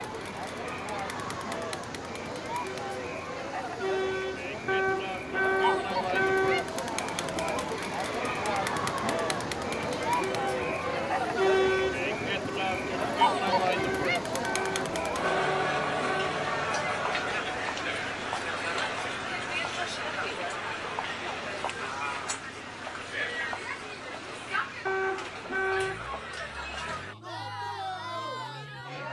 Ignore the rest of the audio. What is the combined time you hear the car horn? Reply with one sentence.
The car horn can be heard for 6 seconds in total.